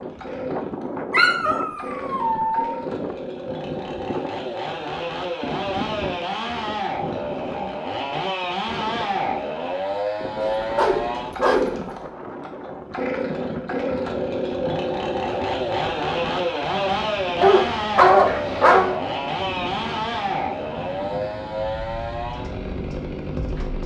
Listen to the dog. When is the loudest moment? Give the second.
18 s.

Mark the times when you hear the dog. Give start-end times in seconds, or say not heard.
1.1-2.8, 10.4-11.8, 17.4-19.0.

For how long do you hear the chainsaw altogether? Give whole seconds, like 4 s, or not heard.
24 s.